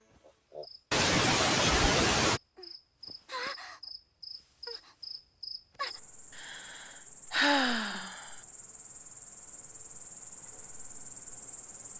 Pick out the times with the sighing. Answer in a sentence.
The sighing can be heard from 0.9 to 2.4 s and from 6.3 to 8.3 s.